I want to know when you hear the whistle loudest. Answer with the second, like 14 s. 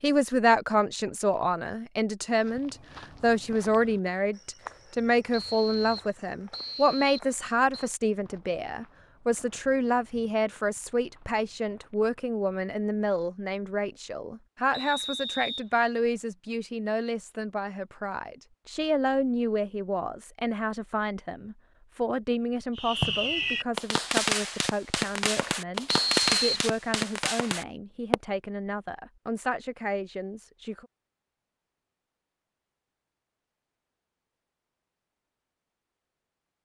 26 s.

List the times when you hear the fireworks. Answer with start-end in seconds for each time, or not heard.
22.8-28.1.